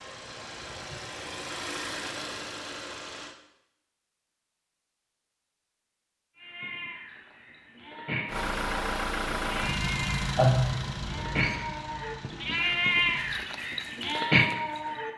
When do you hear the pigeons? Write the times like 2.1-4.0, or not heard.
not heard.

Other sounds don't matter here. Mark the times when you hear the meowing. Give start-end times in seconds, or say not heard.
10.3-11.6.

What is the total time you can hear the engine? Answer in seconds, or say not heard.
9 s.